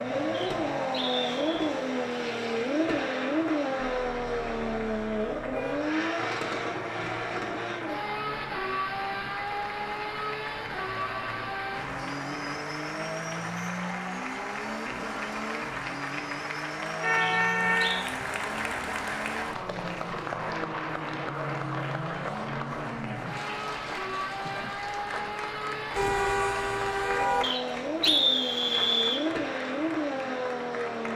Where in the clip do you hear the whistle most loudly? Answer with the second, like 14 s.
28 s.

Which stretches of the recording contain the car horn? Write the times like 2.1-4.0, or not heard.
4.0-5.8, 17.0-18.1, 25.9-27.4.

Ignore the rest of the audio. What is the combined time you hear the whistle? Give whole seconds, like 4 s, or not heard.
4 s.